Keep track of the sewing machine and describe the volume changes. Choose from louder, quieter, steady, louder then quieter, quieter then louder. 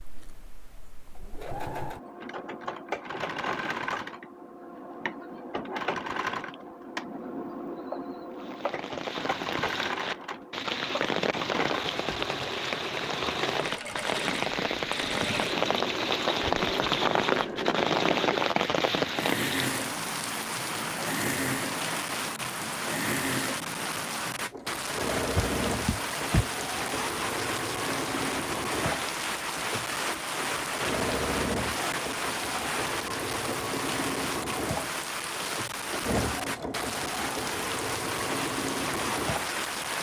steady.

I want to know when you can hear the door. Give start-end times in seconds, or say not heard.
25.4-26.4.